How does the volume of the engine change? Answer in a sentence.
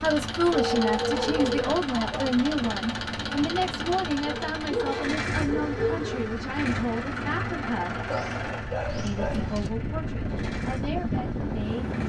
The volume of the engine goes down.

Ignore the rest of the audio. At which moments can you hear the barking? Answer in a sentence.
The barking can be heard from 0.5 to 2.3 s, from 4.2 to 6.2 s and from 8.1 to 9.7 s.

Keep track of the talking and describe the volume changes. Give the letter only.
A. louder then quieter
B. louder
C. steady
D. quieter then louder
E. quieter
E.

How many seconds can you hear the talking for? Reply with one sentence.
You can hear the talking for 11 seconds altogether.